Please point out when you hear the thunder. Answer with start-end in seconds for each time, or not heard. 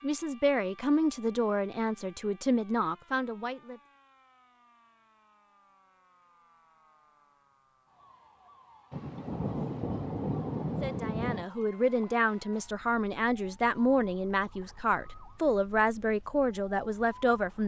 8.9-11.4.